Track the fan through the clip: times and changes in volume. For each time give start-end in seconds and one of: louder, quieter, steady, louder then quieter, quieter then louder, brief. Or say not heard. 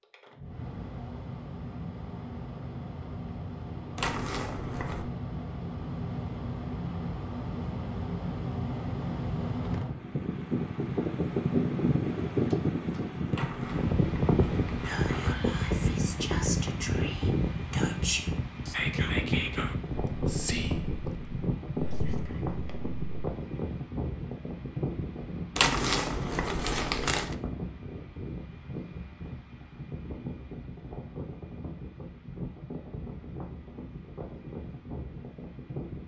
0.0-36.0 louder then quieter.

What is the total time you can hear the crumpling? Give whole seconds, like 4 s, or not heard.
5 s.